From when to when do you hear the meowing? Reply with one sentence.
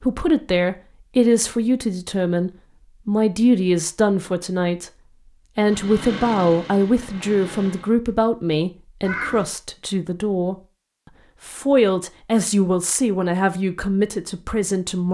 You can hear the meowing from 9.0 to 9.4 s.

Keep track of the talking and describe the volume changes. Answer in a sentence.
The loudness of the talking stays about the same.